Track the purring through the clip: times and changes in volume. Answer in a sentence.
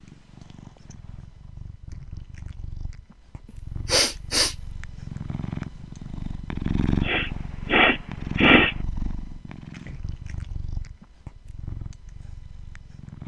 The purring can be heard from 0.0 to 13.2 s, getting louder then quieter.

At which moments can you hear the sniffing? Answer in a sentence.
The sniffing can be heard from 3.9 to 4.5 s and from 7.0 to 8.8 s.